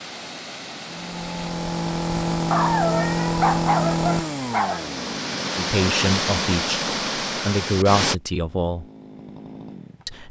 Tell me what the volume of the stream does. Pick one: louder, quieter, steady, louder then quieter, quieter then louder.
louder.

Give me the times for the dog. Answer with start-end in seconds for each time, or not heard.
2.5-4.8.